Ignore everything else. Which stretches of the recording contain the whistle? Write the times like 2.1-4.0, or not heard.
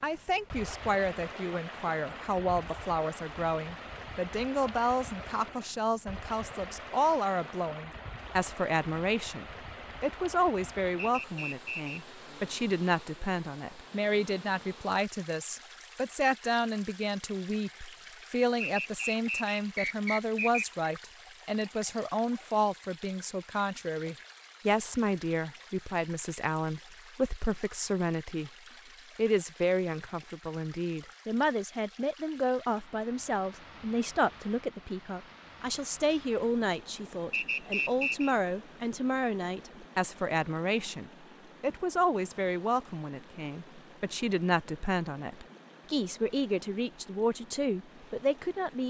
10.9-12.1, 18.6-20.9, 37.3-38.4.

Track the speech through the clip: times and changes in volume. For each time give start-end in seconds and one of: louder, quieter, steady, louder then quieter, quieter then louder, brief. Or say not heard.
0.0-28.5 steady
29.1-48.8 steady.